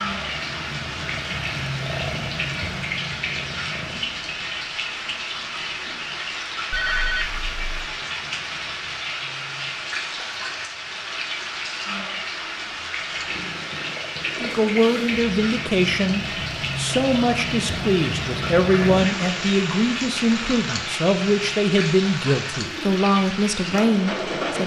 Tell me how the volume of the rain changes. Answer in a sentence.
The loudness of the rain stays about the same.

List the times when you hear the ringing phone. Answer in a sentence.
You can hear the ringing phone from 6.7 to 7.8 s.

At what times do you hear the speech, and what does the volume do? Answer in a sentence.
You can hear the speech from 14.4 to 24.6 s, at a steady volume.